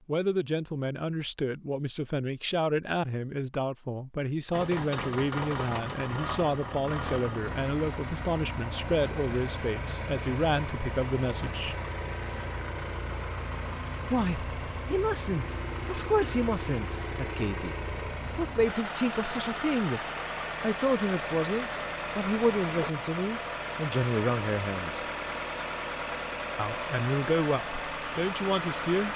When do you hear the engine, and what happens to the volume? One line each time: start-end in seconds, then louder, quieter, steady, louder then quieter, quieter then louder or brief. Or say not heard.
4.5-29.1 steady.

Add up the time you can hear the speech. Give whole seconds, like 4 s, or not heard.
25 s.